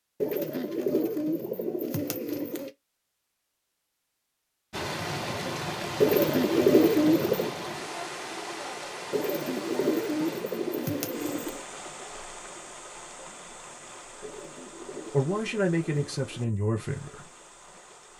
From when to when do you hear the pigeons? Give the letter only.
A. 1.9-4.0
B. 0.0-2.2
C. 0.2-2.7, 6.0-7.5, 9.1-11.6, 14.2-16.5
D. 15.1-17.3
C.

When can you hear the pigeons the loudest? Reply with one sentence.
The volume of the pigeons peaks at 7 seconds.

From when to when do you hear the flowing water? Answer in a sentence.
You can hear the flowing water from 4.7 to 18.1 s.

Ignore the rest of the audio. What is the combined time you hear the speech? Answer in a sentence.
You can hear the speech for 2 seconds altogether.